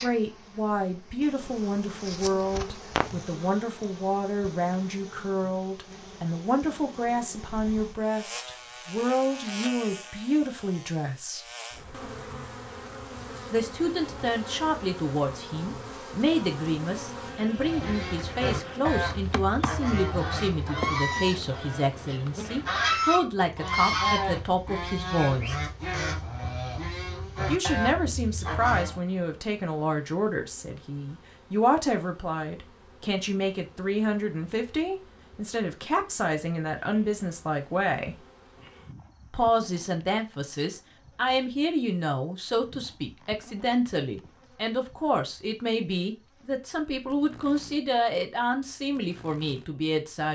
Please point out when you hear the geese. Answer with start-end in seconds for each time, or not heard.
17.6-28.9.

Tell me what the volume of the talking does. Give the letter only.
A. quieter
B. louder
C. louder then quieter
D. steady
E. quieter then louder
D.